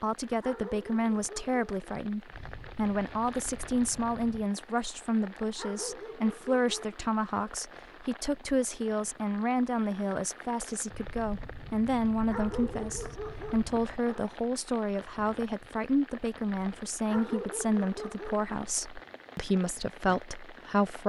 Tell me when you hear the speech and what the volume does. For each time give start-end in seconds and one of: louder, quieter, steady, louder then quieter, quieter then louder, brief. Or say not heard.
0.0-21.0 steady.